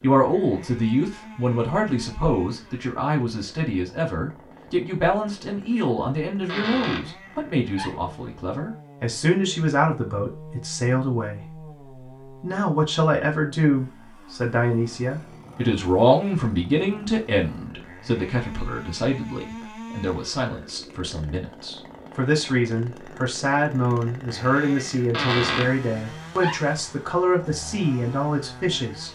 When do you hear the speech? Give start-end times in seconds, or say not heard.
0.0-29.1.